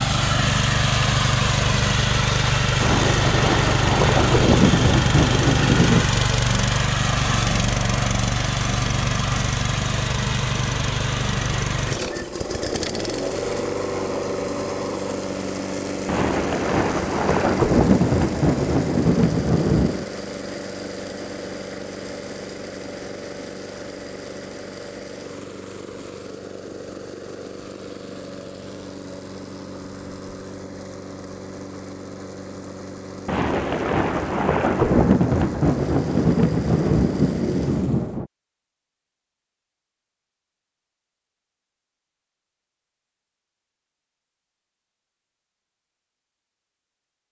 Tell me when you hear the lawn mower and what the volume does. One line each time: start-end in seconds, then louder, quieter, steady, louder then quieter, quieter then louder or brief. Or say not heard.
0.0-38.2 quieter.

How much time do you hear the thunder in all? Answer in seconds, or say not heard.
12 s.